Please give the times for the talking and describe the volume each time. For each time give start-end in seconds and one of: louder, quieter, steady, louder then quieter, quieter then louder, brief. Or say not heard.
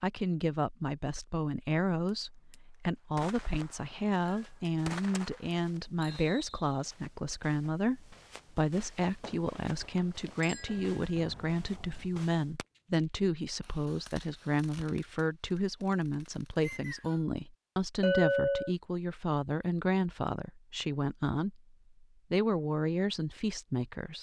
0.0-24.1 steady.